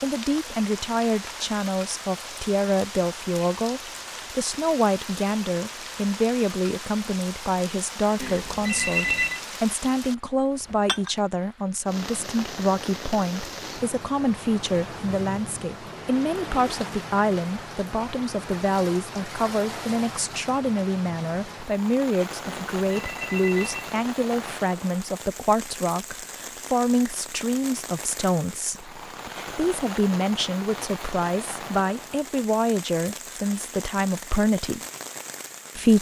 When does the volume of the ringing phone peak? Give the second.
9 s.